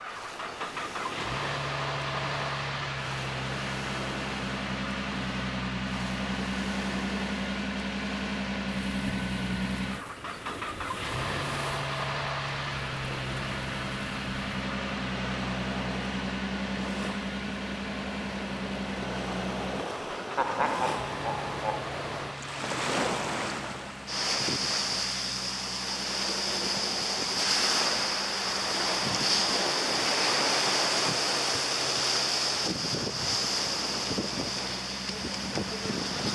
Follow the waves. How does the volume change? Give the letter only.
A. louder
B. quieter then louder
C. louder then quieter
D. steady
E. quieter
A.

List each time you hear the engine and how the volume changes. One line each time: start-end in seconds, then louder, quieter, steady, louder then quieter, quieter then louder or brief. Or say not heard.
0.0-36.1 quieter.